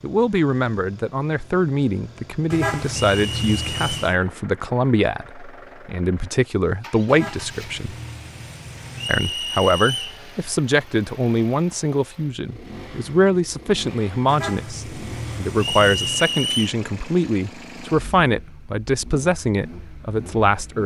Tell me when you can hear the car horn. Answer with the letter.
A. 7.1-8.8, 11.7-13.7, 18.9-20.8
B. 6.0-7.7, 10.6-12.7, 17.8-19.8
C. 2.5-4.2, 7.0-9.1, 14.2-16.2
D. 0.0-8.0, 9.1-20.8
C.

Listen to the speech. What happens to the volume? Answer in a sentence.
The volume of the speech stays about the same.